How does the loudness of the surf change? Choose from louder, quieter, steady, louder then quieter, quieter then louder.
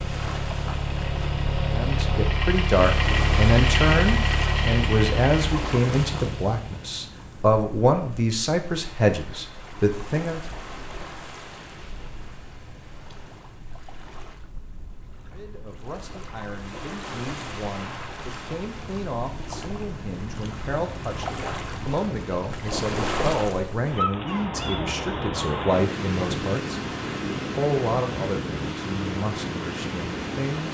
quieter then louder.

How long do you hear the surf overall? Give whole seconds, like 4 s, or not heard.
31 s.